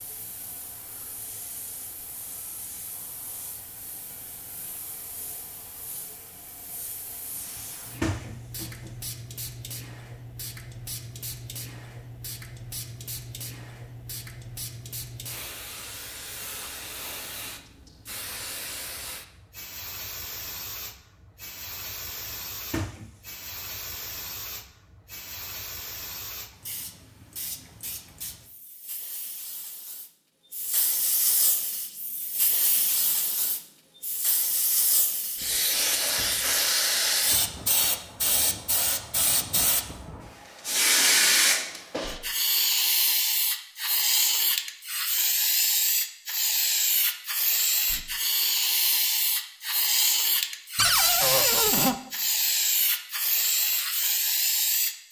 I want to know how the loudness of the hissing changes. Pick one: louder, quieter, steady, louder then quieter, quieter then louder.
louder.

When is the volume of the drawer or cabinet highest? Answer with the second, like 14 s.
51 s.